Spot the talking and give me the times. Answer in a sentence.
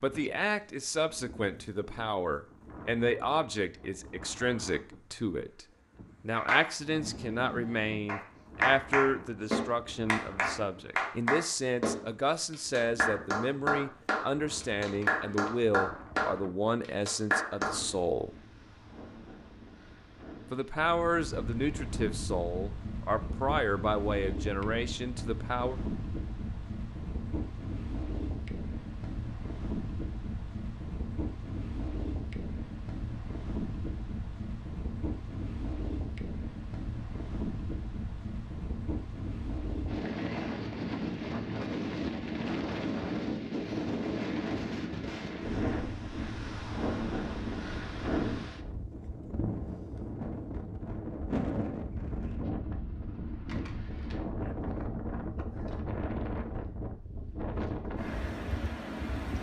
You can hear the talking from 0.0 to 18.4 s and from 20.5 to 25.8 s.